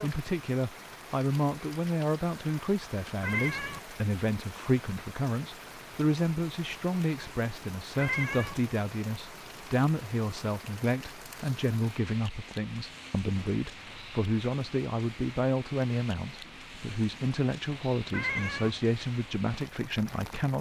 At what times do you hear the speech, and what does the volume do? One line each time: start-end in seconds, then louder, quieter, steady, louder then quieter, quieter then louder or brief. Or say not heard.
0.0-20.5 steady.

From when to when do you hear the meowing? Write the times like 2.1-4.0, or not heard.
3.2-3.8, 8.0-8.6, 18.1-18.7.